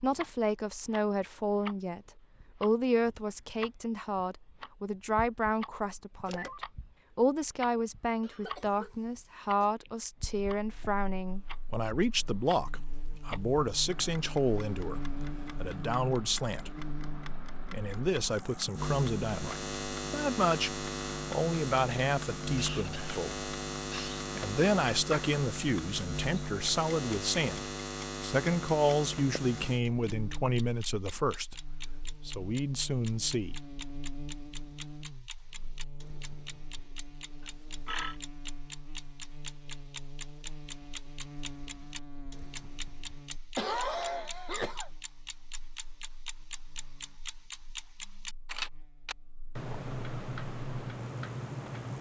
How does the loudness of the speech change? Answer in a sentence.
The volume of the speech stays about the same.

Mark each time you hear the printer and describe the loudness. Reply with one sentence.
The printer can't be heard in this clip.